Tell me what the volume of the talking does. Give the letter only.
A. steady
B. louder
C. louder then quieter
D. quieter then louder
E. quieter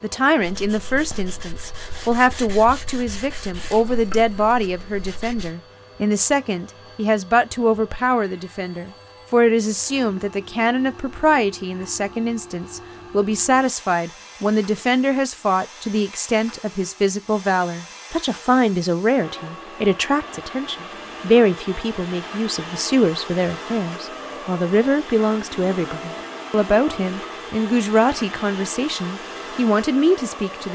A.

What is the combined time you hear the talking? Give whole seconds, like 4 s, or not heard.
31 s.